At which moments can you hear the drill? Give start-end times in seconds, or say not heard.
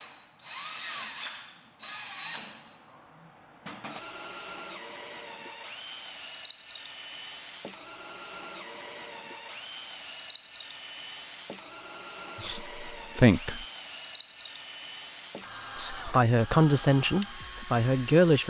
0.0-18.4.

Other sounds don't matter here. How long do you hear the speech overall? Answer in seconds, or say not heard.
4 s.